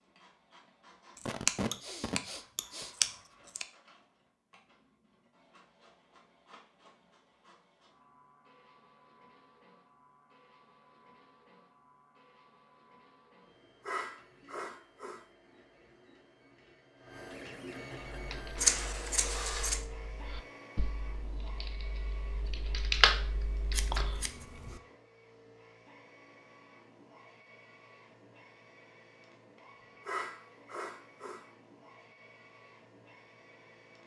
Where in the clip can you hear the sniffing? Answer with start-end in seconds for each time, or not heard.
1.2-3.1, 13.8-15.2, 30.1-31.4.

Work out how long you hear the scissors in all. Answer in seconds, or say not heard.
5 s.